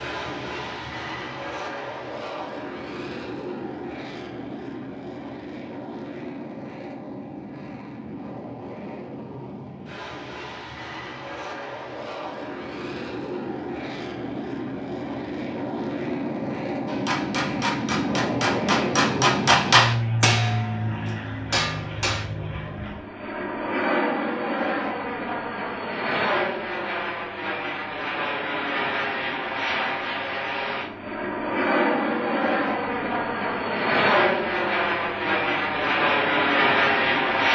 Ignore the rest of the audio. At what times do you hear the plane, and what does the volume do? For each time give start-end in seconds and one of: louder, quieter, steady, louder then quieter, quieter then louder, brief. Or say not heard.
0.0-37.4 louder.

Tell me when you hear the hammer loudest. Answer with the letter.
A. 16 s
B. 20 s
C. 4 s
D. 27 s
B.